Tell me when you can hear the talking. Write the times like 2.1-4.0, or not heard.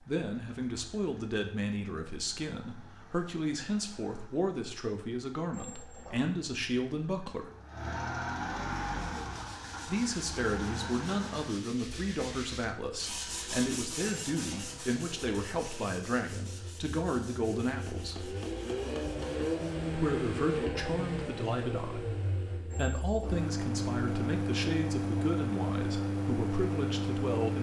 0.1-7.5, 9.8-18.4, 19.9-27.5.